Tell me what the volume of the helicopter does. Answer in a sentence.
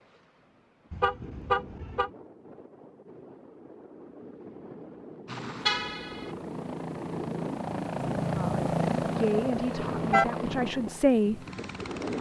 The volume of the helicopter goes up, then down.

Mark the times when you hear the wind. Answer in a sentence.
The wind can be heard from 0.0 to 12.1 s.